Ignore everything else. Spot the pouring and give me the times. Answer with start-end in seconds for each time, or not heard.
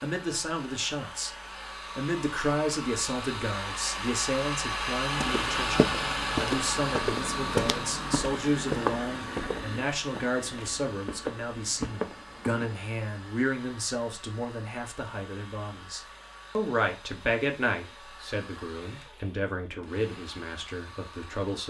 not heard.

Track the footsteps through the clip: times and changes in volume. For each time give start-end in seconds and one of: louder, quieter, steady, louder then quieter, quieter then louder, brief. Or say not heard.
5.2-12.7 quieter then louder.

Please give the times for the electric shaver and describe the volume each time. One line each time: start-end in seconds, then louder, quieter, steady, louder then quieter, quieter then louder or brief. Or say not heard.
not heard.